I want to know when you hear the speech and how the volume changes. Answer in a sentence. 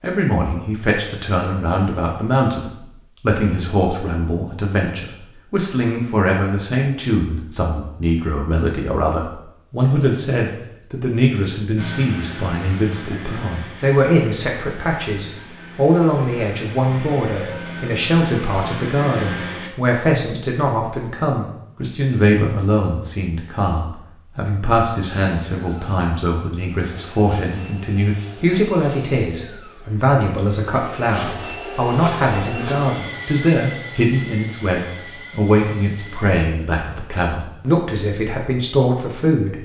You can hear the speech from 0.0 to 39.6 s, at a steady volume.